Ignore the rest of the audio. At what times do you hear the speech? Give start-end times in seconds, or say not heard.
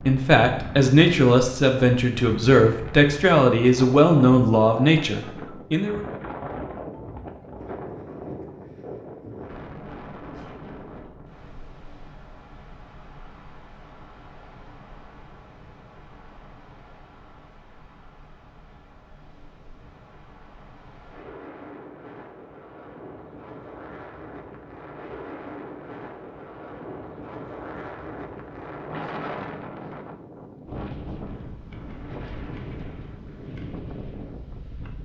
0.1-6.0.